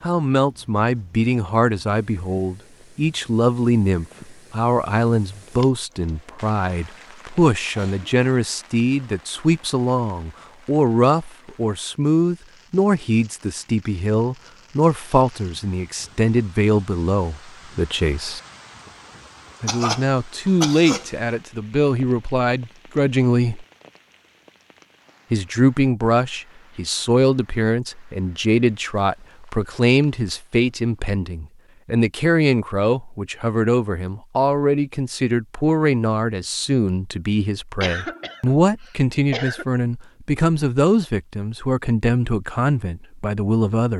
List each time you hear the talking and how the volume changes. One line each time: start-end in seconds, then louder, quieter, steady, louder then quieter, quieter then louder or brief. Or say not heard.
0.0-18.4 steady
19.6-23.6 steady
25.3-43.9 steady.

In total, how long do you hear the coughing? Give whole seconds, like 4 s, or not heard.
4 s.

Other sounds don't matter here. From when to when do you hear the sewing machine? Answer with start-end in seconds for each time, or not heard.
not heard.